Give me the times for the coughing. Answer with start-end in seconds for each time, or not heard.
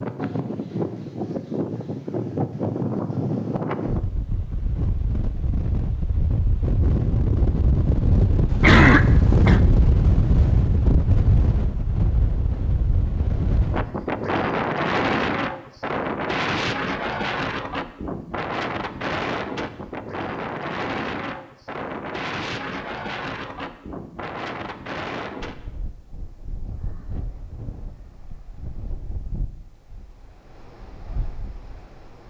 8.5-9.6.